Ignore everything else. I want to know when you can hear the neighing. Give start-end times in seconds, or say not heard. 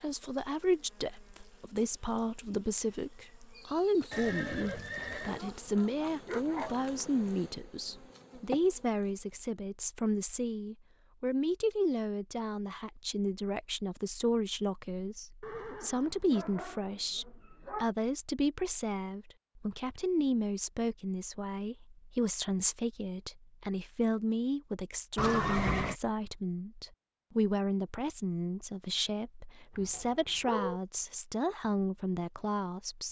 4.1-5.4, 15.4-16.4, 25.1-25.9.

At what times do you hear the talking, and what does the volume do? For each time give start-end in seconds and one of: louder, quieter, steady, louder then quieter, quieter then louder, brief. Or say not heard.
0.0-33.0 steady.